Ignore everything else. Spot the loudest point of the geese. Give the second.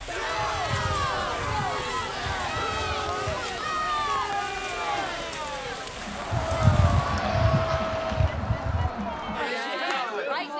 7 s.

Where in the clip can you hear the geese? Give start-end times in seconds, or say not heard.
0.3-3.4, 6.3-8.9.